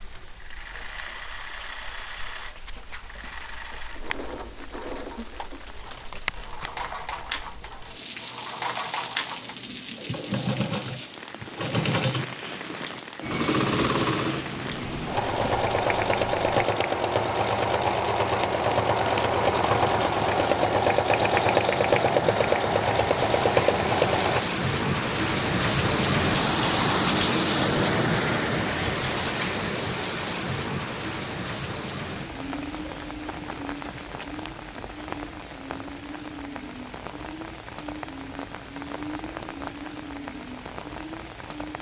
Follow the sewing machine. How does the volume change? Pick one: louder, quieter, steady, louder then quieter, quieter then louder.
louder.